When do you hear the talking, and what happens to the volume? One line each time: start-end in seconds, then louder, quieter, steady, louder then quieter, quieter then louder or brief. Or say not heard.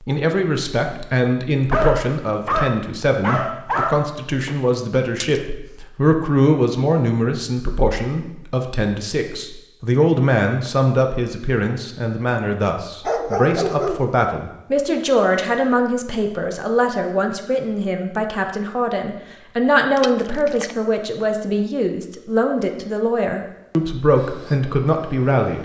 0.0-25.6 steady.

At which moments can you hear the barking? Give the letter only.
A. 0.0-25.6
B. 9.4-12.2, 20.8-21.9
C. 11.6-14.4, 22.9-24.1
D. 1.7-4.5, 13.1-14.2
D.